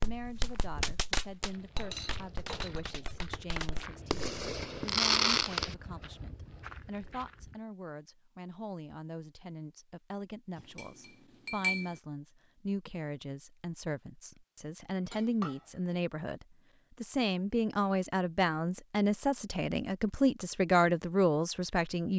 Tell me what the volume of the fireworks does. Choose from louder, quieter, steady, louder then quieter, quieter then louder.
quieter then louder.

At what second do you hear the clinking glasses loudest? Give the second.
12 s.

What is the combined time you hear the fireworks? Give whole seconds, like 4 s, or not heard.
6 s.